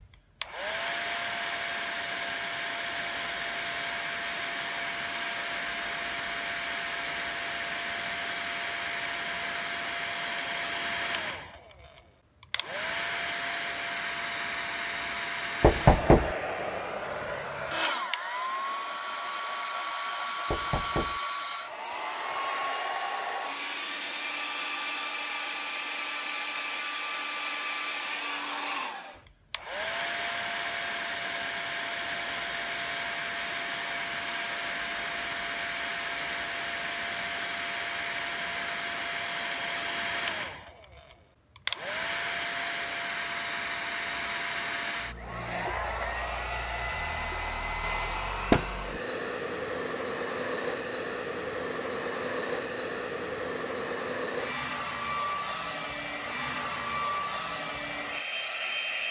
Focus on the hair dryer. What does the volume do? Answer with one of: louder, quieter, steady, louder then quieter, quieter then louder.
steady.